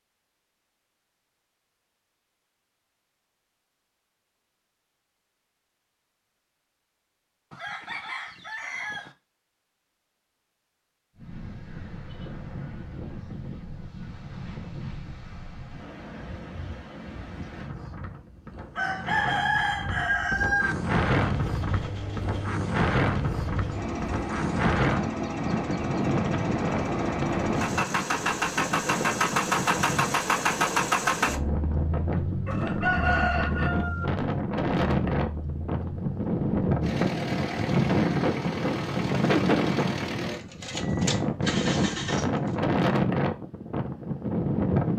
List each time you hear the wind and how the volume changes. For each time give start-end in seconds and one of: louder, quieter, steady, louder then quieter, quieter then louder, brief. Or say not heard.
11.2-44.9 louder.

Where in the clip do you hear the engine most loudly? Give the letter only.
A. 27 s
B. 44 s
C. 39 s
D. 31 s
D.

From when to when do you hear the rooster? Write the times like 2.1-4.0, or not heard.
7.5-9.2, 18.8-20.8, 32.5-34.0.